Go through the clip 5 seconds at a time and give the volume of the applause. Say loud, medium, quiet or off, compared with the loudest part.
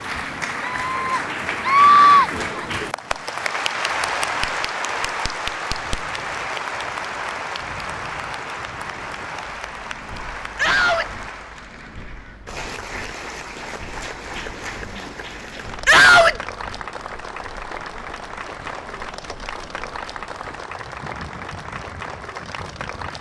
loud, loud, medium, medium, medium.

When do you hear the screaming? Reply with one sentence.
The screaming can be heard from 0.6 to 2.6 s, from 10.6 to 11.1 s and from 15.8 to 16.4 s.